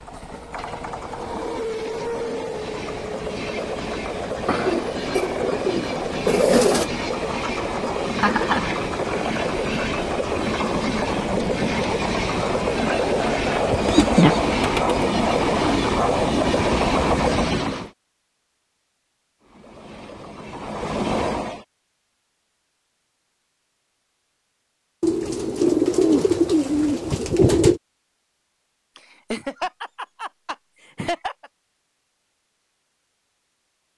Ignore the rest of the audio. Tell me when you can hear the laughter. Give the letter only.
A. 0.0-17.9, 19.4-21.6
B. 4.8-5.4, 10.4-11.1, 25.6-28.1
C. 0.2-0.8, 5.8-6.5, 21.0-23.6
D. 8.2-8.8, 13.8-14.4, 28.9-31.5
D.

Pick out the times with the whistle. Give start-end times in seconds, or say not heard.
not heard.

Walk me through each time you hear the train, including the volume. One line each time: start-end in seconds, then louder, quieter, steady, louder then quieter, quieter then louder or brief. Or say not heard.
0.0-17.9 louder
19.4-21.6 brief.